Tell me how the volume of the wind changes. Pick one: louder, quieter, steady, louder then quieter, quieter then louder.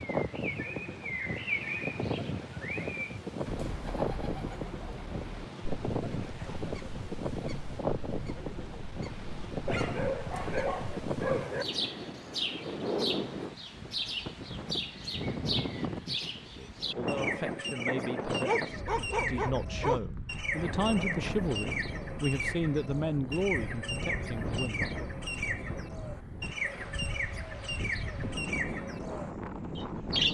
steady.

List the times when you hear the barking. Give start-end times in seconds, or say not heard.
9.7-11.7, 18.4-20.1.